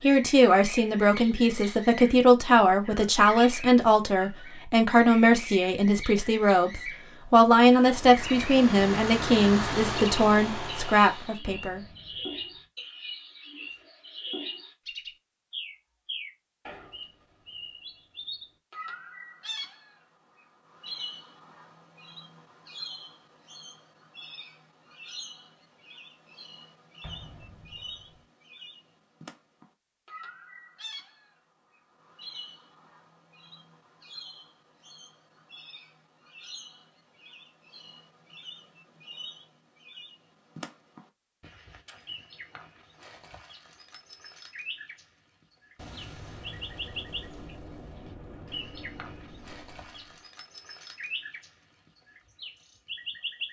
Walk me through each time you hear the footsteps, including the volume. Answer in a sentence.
The footsteps can't be heard in this clip.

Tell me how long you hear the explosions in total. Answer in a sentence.
The explosions can be heard for 7 seconds in total.